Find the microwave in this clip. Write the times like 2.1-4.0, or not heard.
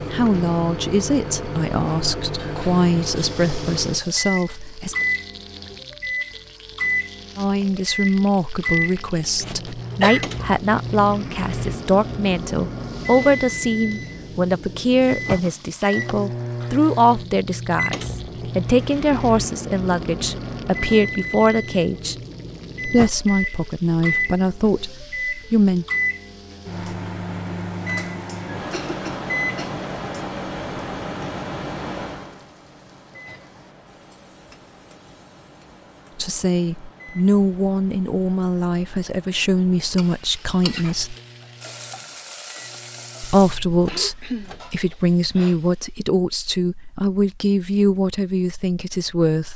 0.0-44.8.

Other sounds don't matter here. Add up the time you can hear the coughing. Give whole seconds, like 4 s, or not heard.
4 s.